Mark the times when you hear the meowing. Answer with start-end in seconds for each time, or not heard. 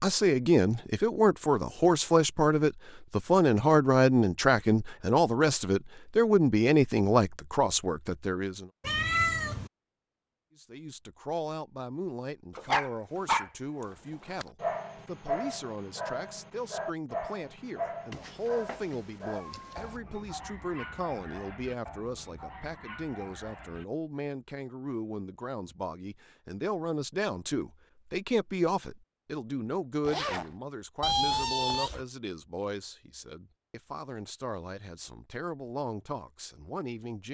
8.8-9.7, 18.1-20.0, 31.0-32.0.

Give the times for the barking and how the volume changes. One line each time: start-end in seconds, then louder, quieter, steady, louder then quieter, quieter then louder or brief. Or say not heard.
12.6-23.9 quieter.